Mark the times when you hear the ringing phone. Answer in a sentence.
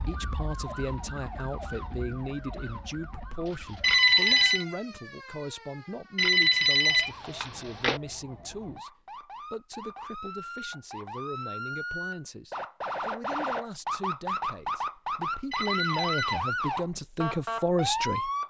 The ringing phone can be heard from 3.8 to 4.7 s, from 6.2 to 8.0 s and from 15.5 to 16.4 s.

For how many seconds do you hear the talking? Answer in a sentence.
You can hear the talking for 18 seconds altogether.